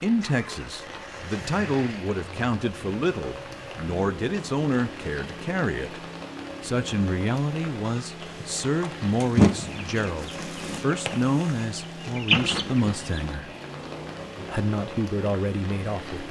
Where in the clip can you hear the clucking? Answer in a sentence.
The clucking can be heard from 7.8 to 13.3 s.